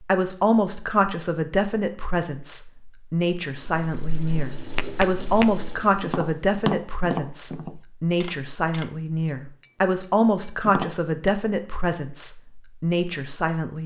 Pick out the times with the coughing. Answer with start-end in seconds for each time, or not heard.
not heard.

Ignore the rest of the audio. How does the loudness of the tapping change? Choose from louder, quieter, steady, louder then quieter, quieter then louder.
quieter then louder.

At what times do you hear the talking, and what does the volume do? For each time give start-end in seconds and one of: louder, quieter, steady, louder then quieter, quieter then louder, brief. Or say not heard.
0.0-13.8 steady.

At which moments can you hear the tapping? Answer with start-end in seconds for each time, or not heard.
4.8-11.3.